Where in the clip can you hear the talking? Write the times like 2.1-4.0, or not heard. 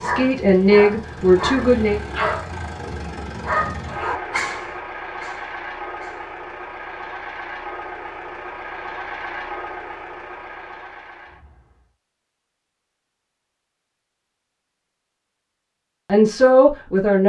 0.0-2.0, 16.1-17.2.